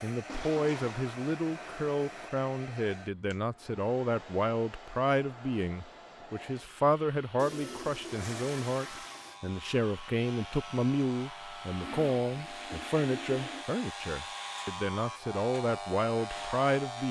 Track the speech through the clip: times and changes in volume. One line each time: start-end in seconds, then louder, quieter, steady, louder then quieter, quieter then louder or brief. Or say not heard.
0.0-17.0 steady.